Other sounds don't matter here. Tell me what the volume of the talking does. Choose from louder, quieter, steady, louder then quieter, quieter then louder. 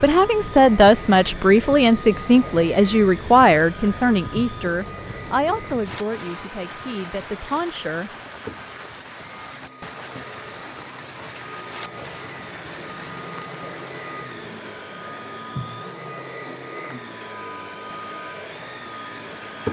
quieter.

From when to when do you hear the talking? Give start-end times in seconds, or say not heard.
0.0-8.1.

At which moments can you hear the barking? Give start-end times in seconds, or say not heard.
not heard.